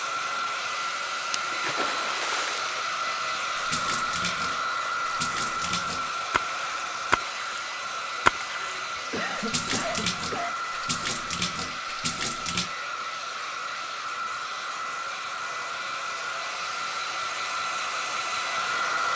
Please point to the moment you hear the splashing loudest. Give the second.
8 s.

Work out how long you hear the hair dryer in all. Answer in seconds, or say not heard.
19 s.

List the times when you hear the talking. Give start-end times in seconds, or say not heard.
not heard.